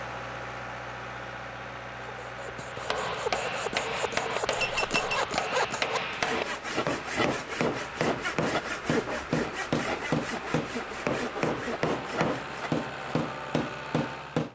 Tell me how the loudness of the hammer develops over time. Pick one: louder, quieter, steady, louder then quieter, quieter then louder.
steady.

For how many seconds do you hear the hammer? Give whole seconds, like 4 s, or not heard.
12 s.